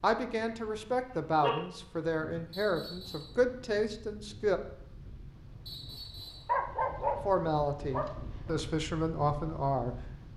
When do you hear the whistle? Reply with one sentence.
The whistle can be heard from 2.5 to 3.4 s and from 5.7 to 6.5 s.